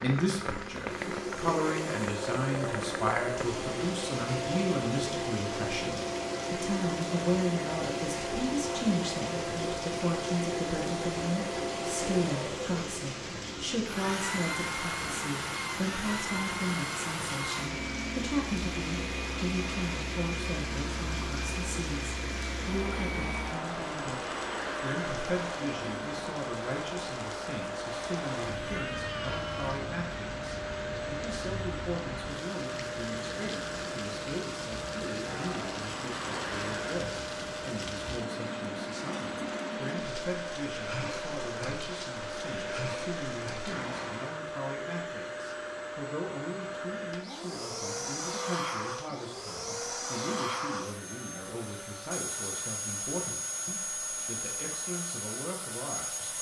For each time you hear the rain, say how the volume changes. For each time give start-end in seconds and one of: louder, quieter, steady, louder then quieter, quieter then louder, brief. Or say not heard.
0.0-44.5 steady.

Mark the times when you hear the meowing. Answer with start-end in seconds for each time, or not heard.
28.6-29.8.